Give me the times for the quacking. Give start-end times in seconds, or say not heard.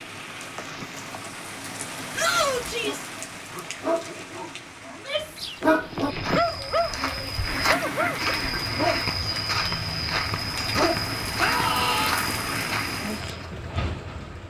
7.4-9.2.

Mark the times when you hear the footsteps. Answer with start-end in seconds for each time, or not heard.
5.9-13.6.